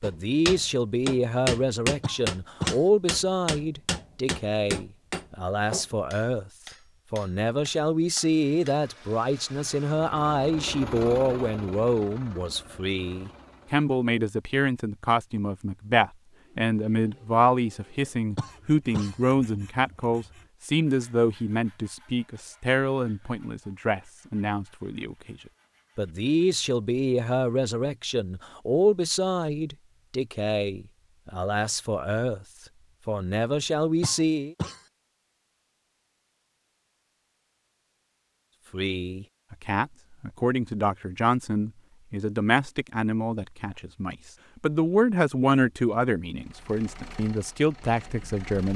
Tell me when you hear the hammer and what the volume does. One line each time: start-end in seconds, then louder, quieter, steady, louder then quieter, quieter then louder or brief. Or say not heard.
0.0-8.8 quieter.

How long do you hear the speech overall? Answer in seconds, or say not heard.
43 s.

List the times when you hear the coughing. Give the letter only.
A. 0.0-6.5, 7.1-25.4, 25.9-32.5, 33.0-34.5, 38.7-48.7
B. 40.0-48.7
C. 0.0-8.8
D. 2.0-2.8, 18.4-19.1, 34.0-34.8
D.